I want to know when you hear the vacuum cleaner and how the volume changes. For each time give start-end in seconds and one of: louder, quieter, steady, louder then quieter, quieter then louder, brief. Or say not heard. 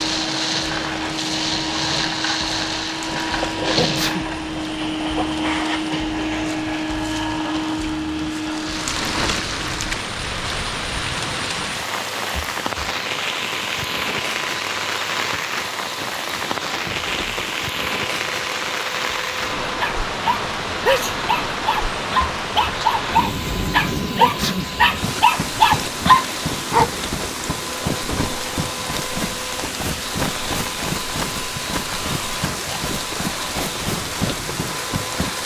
0.0-35.4 quieter.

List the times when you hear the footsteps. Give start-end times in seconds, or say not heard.
not heard.